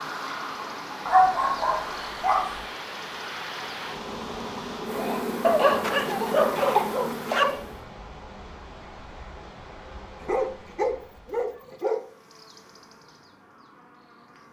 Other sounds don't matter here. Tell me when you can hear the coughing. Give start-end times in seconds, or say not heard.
5.0-7.5.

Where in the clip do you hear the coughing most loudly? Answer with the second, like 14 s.
7 s.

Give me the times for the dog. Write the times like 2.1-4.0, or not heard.
1.1-2.6, 5.4-7.5, 10.2-12.1.